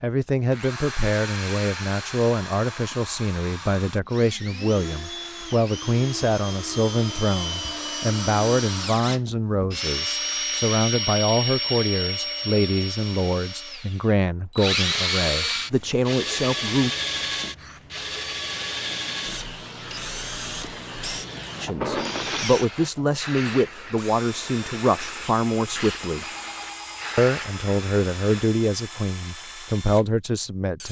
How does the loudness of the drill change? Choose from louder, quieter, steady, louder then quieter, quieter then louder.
louder then quieter.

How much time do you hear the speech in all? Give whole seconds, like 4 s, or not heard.
25 s.